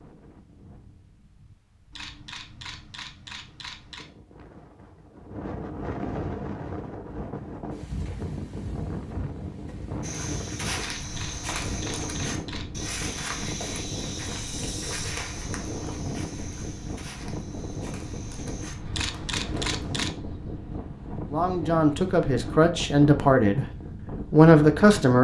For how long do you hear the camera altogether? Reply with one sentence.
The camera can be heard for 5 seconds in total.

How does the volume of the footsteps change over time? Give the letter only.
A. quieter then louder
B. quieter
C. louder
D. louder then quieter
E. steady
B.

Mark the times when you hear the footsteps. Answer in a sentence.
The footsteps can be heard from 10.0 to 19.8 s.